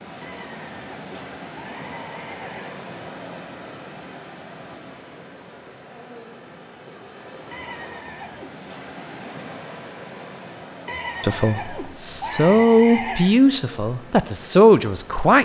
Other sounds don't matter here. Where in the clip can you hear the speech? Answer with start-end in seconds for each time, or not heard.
11.2-15.4.